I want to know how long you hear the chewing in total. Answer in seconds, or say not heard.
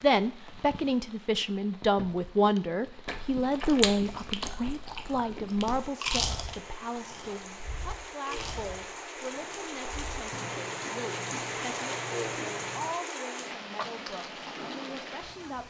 10 s.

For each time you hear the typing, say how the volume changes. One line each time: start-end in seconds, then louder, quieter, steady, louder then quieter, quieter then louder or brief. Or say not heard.
not heard.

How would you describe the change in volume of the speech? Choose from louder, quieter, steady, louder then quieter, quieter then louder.
quieter.